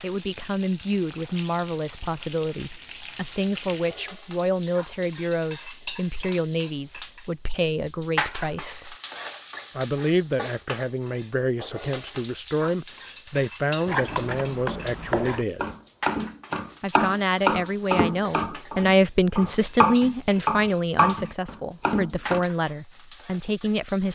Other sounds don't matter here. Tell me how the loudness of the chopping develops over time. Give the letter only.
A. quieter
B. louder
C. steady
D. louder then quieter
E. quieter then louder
B.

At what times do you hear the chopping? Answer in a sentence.
The chopping can be heard from 13.8 to 22.4 s.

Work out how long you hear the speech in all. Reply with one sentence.
The speech can be heard for 22 seconds in total.